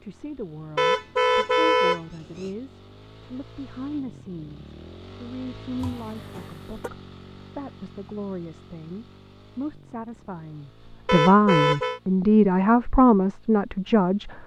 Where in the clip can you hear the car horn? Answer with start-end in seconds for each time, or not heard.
0.8-2.5, 5.8-6.9, 11.1-12.0.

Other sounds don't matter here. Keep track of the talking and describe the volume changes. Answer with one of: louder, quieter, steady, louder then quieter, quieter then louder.
louder.